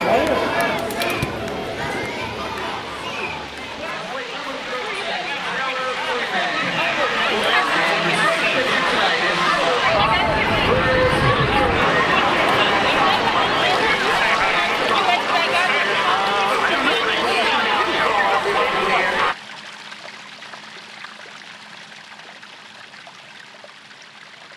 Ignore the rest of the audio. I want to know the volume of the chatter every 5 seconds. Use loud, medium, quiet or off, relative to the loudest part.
medium, loud, loud, loud, off.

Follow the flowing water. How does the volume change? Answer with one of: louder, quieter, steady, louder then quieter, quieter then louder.
louder then quieter.